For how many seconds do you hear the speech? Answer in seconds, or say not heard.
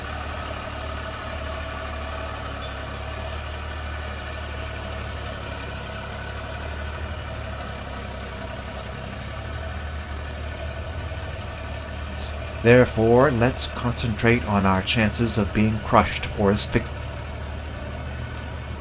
5 s.